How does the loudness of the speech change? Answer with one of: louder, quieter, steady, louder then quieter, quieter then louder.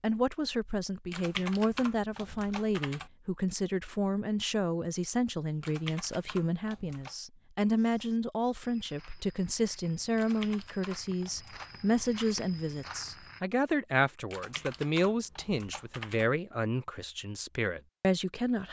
steady.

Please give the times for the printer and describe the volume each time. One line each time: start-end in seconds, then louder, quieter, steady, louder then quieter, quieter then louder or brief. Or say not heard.
not heard.